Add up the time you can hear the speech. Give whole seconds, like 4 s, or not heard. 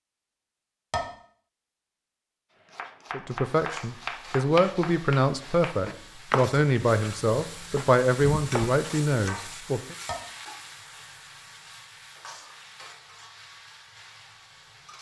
7 s.